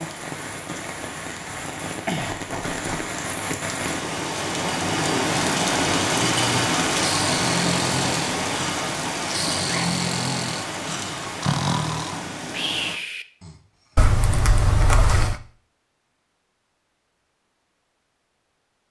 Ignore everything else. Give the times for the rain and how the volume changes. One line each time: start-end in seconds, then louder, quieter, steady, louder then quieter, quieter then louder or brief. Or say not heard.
0.0-12.9 louder then quieter.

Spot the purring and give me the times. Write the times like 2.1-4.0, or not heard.
not heard.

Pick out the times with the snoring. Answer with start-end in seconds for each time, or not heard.
6.3-13.6.